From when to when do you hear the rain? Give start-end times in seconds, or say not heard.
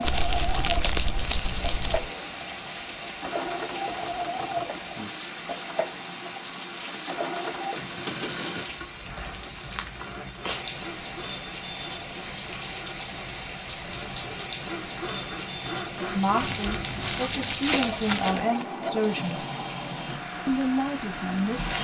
0.0-21.7.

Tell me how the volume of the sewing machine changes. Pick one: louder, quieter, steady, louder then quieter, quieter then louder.
quieter then louder.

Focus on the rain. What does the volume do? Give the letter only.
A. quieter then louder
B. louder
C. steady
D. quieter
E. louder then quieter
C.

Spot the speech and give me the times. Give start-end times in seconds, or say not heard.
16.0-19.4, 20.4-21.7.